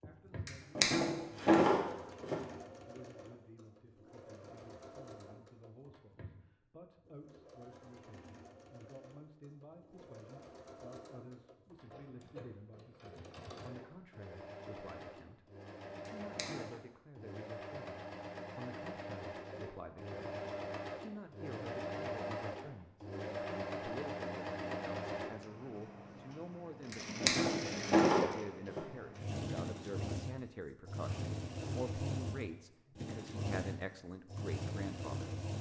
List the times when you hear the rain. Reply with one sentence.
The rain can't be heard in this clip.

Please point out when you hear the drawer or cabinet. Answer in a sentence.
The drawer or cabinet can be heard from 0.5 to 2.4 s, from 16.1 to 16.6 s and from 26.9 to 28.8 s.